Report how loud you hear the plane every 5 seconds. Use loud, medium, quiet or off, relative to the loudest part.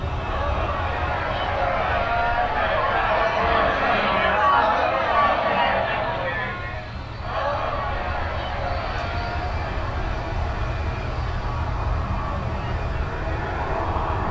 medium, medium, loud.